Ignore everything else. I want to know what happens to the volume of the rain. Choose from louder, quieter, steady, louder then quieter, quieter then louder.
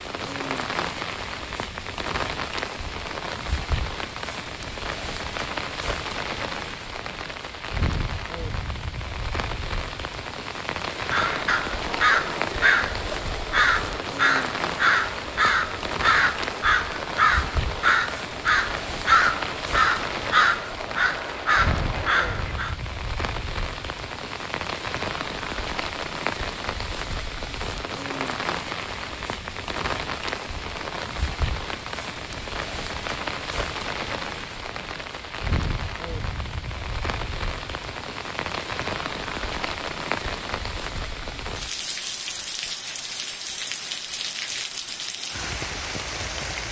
steady.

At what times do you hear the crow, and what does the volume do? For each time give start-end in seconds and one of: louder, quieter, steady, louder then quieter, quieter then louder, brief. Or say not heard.
10.9-22.8 steady.